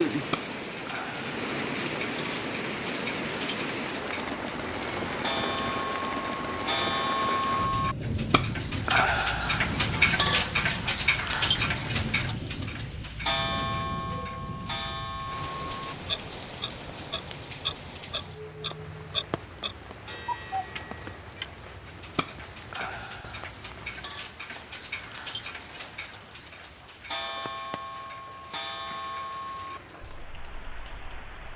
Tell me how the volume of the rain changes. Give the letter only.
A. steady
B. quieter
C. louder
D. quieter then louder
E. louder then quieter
B.